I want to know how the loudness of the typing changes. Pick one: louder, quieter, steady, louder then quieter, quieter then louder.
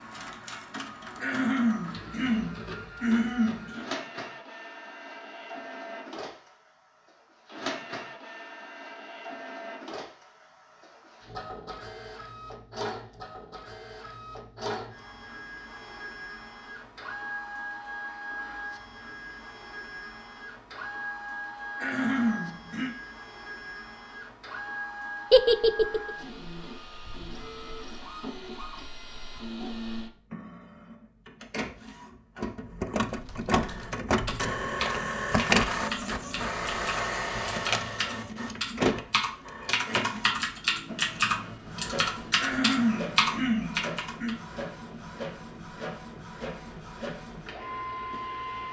louder.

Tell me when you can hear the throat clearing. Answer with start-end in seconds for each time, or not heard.
1.2-3.9, 21.8-22.9, 42.4-44.4.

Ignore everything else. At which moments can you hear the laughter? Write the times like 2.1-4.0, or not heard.
25.3-26.1.